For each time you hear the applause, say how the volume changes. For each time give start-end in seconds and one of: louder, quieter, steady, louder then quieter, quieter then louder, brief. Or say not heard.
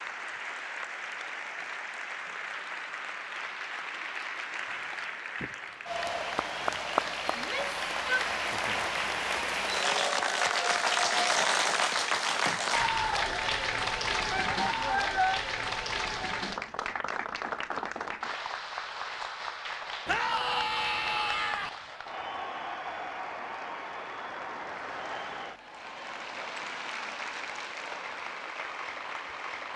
0.0-29.7 louder then quieter.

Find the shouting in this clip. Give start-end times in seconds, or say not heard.
7.3-8.2, 14.3-15.4, 20.1-21.7.